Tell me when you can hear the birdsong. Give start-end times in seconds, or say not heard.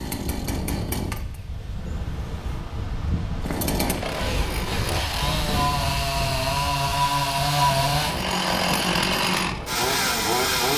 not heard.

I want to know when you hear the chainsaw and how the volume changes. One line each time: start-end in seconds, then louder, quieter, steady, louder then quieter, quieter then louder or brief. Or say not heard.
0.0-10.7 louder.